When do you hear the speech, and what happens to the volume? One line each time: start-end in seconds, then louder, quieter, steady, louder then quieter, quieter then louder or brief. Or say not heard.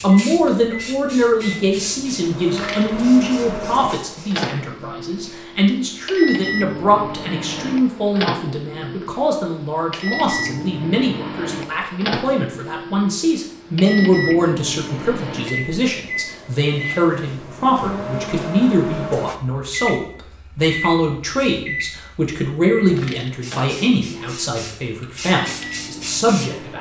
0.0-26.7 steady.